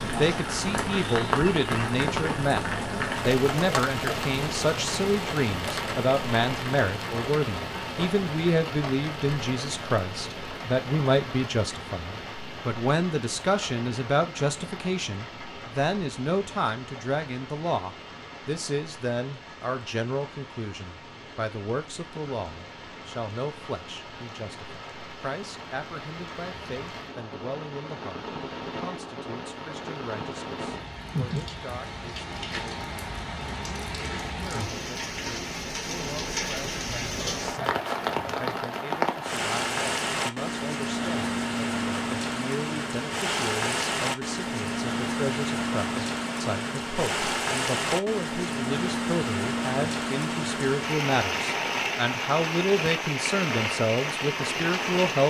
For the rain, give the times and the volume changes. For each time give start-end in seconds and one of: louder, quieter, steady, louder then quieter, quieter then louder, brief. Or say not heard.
0.0-55.2 quieter then louder.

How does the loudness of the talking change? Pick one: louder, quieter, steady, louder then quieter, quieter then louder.
quieter then louder.